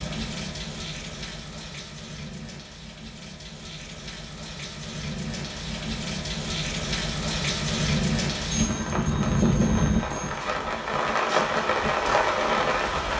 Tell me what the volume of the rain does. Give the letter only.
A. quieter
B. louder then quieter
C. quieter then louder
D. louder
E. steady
D.